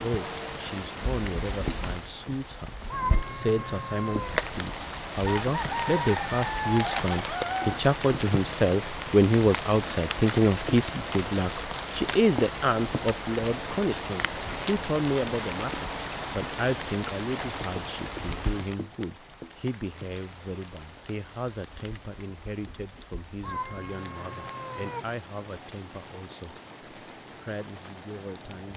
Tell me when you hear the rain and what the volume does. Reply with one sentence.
The rain can be heard from 0.0 to 28.7 s, getting quieter.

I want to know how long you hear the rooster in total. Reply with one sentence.
The rooster can be heard for 3 seconds in total.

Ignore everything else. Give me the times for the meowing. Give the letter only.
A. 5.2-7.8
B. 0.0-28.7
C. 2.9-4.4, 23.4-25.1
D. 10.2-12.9
C.